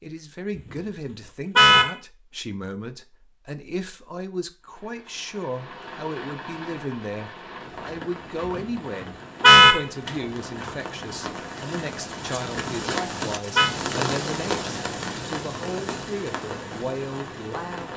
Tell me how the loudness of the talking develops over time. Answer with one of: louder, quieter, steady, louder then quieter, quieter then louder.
steady.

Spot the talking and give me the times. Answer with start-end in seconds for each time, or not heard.
0.0-17.9.